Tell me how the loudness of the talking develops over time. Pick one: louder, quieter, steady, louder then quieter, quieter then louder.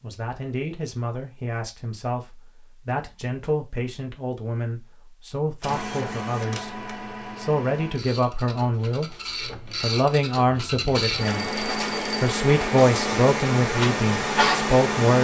louder.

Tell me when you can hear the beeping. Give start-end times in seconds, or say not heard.
11.2-12.3.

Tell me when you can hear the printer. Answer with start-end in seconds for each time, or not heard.
5.6-15.2.